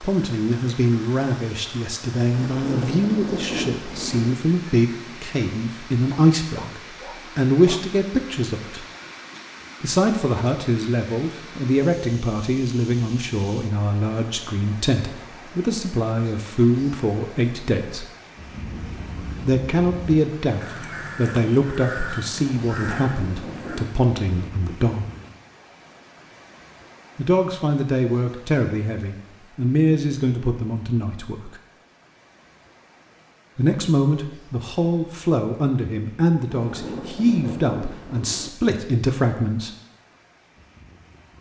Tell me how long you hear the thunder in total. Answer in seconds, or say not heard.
6 s.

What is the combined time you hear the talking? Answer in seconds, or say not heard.
33 s.